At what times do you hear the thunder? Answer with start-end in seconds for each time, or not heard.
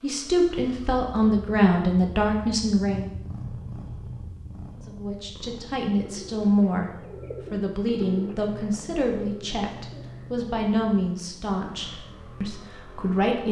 not heard.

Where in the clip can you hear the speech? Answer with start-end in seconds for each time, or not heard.
0.0-3.1, 4.8-13.4.